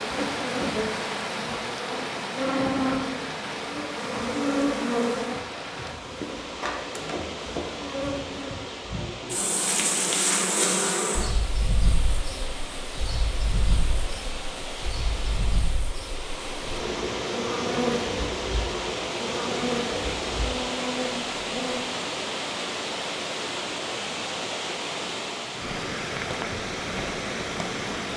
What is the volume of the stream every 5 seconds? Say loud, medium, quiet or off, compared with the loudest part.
loud, medium, medium, loud, loud, loud.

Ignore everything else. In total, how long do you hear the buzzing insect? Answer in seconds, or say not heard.
22 s.